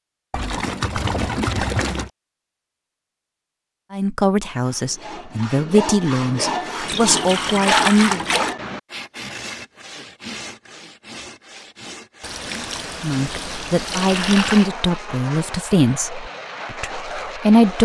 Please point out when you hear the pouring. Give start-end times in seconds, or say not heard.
0.3-2.1, 6.8-8.6, 12.2-14.7.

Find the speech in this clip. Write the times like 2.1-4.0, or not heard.
3.9-8.2, 13.0-17.8.